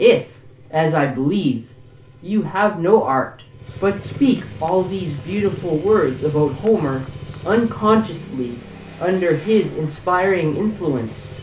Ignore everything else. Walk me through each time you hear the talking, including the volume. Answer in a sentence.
You can hear the talking briefly from 0.0 to 1.6 s; and from 2.2 to 11.2 s, at a steady volume.